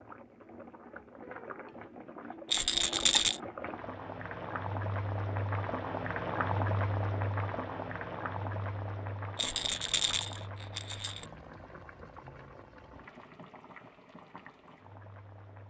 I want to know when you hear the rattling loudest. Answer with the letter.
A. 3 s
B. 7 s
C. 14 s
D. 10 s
A.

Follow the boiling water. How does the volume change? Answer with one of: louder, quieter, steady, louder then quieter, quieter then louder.
louder then quieter.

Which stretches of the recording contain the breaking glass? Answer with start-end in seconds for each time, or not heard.
not heard.